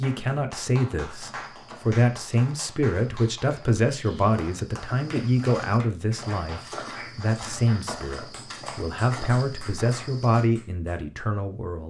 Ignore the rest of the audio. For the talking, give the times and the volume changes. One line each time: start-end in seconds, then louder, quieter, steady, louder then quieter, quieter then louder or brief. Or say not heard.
0.0-11.8 steady.